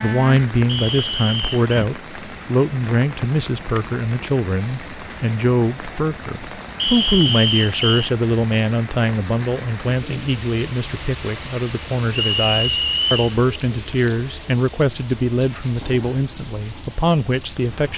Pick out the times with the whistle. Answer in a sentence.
The whistle can be heard from 0.7 to 1.8 s, from 6.8 to 8.1 s and from 12.1 to 13.3 s.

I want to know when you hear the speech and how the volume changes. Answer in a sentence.
The speech can be heard from 0.0 to 17.9 s, at a steady volume.